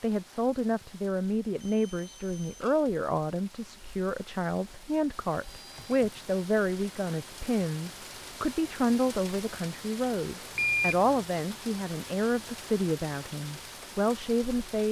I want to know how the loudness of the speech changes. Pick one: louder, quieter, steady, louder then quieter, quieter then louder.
steady.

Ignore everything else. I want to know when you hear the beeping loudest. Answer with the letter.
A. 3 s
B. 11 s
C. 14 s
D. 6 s
B.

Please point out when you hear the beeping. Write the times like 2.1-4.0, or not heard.
1.6-2.9, 5.0-6.3, 10.6-11.2.